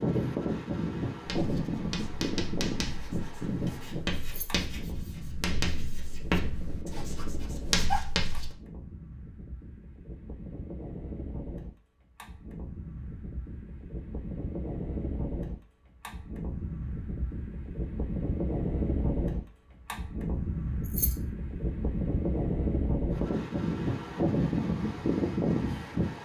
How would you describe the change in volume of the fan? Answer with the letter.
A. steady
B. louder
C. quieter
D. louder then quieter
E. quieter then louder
E.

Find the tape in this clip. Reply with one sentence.
The tape can't be heard in this clip.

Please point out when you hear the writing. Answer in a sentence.
The writing can be heard from 1.2 to 8.5 s.